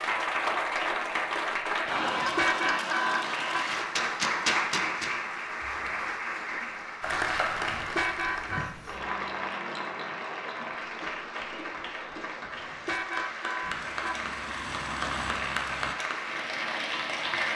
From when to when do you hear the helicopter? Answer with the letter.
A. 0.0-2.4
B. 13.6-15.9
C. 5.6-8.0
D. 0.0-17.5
B.